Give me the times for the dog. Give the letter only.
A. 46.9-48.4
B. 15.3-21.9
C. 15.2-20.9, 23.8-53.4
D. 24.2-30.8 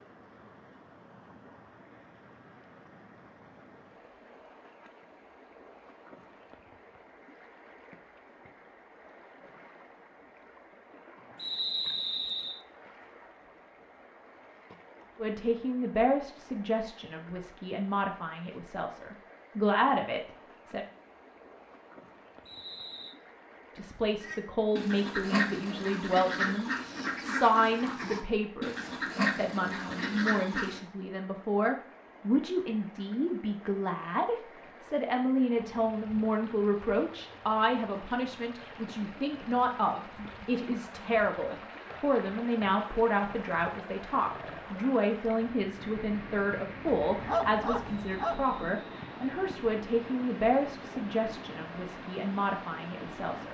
A.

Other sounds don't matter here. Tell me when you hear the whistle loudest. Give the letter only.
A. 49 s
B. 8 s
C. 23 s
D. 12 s
D.